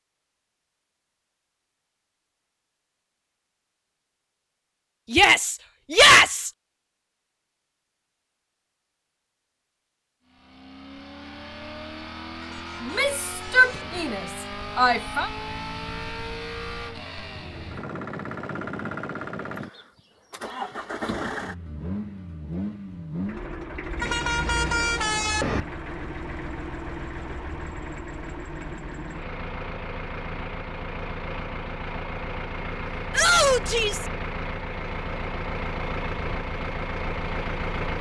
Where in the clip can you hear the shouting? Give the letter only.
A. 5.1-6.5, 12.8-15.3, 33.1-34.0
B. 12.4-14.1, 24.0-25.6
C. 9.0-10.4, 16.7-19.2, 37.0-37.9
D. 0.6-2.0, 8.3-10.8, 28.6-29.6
A.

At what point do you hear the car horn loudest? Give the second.
25 s.